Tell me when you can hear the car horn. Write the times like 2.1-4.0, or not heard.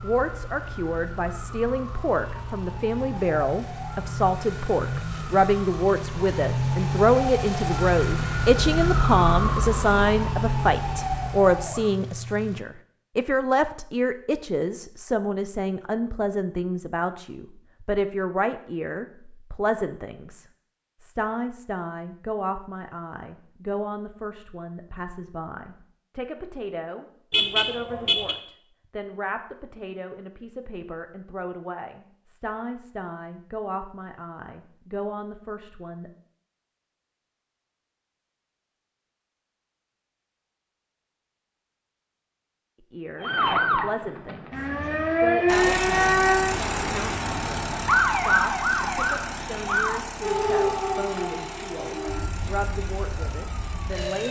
27.3-28.4.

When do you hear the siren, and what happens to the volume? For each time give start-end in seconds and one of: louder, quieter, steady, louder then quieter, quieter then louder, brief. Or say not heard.
0.0-11.9 louder
43.2-54.2 quieter.